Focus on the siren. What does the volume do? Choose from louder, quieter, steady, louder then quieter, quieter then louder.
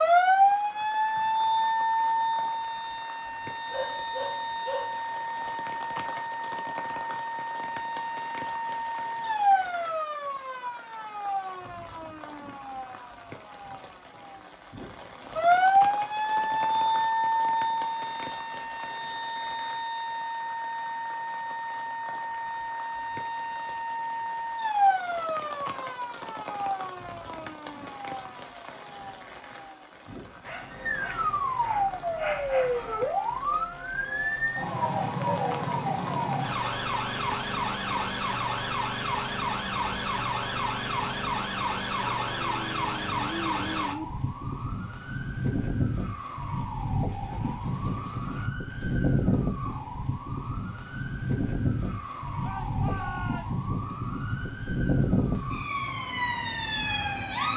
steady.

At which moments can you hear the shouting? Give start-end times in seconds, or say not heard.
52.4-53.6.